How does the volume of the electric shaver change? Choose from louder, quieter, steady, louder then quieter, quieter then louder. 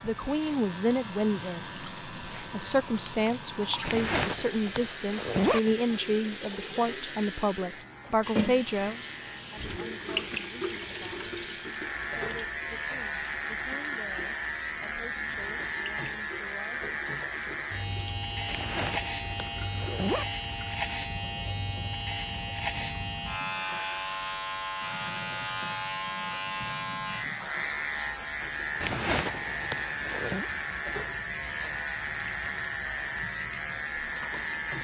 louder.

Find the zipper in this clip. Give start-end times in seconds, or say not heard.
3.8-5.6, 18.4-20.2, 28.8-30.4.